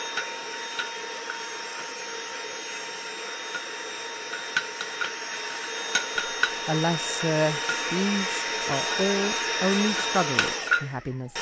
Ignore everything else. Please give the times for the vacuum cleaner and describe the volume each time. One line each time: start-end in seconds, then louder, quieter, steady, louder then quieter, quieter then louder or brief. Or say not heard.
0.0-11.3 louder.